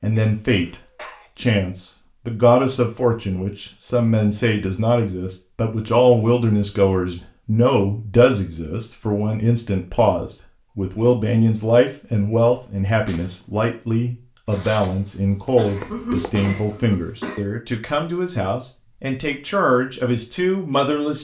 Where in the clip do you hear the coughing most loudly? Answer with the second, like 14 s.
16 s.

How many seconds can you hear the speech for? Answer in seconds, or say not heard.
21 s.